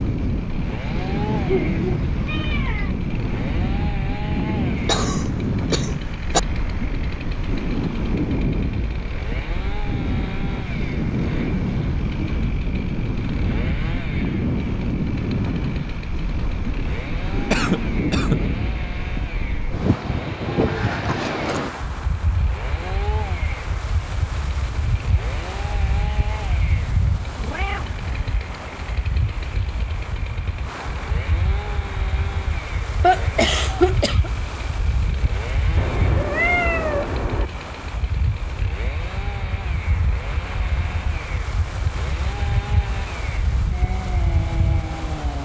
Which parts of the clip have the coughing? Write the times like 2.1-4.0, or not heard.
4.8-6.4, 17.5-18.4, 33.0-34.3.